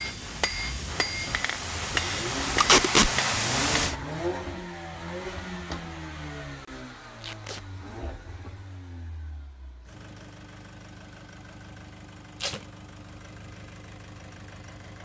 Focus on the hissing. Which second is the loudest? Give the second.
3 s.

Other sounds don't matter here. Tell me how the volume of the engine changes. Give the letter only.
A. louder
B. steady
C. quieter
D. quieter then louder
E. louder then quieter
C.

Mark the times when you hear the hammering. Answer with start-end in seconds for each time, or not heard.
0.0-4.0.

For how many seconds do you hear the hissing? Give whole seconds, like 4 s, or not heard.
4 s.